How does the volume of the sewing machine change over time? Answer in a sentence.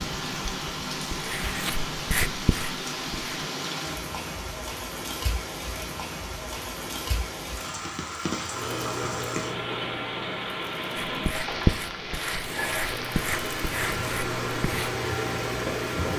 The volume of the sewing machine goes down, then up.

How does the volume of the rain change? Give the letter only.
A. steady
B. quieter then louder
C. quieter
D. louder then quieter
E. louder
A.